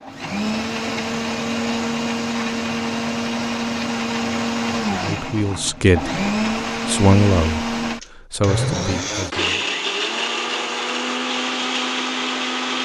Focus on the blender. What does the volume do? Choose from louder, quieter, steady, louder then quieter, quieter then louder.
steady.